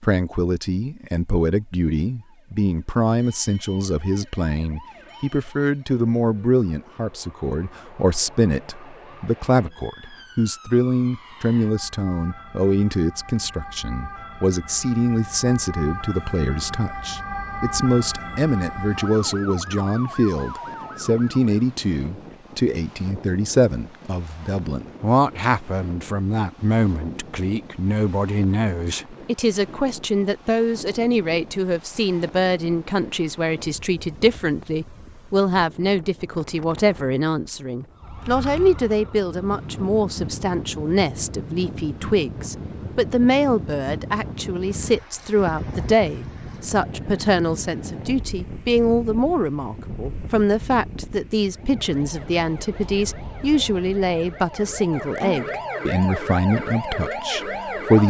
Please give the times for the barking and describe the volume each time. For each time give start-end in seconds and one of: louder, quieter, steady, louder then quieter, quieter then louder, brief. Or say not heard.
not heard.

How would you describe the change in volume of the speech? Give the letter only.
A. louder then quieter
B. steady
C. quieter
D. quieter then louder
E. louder
B.